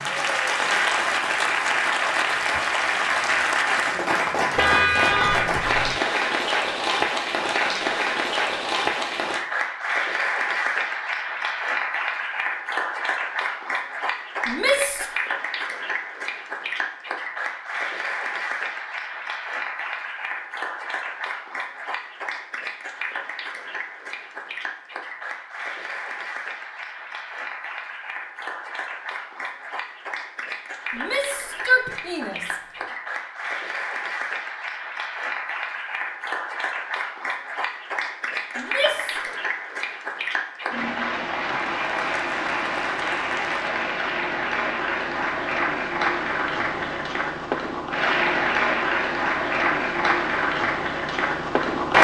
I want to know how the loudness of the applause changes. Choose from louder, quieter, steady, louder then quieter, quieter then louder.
quieter then louder.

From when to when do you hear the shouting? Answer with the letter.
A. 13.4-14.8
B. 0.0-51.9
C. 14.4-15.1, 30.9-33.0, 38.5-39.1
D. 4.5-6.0
C.